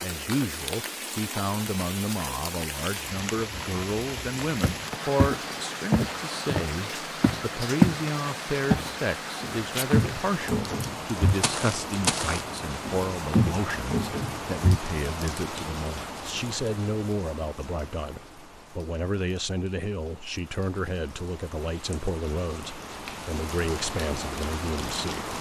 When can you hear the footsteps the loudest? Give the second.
8 s.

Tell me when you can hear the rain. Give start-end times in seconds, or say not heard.
0.0-25.3.